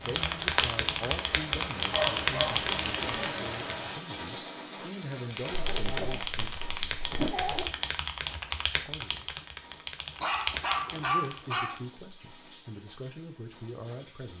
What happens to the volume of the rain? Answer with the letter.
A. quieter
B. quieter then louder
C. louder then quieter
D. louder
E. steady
A.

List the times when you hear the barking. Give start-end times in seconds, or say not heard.
1.8-2.6, 5.5-7.7, 10.2-11.8.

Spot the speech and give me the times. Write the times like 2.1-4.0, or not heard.
0.0-6.5, 8.8-9.3, 10.9-14.3.